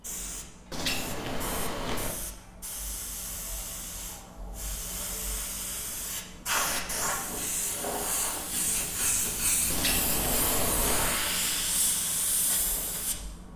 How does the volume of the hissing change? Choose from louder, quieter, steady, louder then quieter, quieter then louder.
louder.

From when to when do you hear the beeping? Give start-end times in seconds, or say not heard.
0.7-2.1, 6.6-7.1, 9.7-11.3.